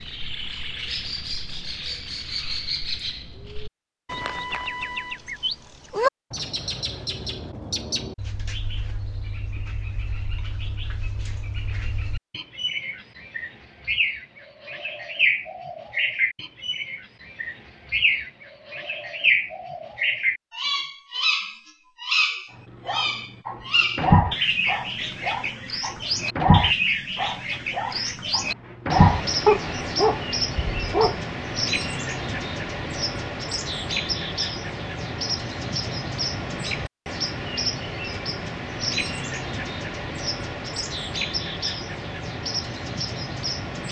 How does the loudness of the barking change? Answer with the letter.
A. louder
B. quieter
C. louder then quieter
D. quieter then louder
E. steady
D.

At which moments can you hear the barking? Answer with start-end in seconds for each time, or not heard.
22.9-31.2.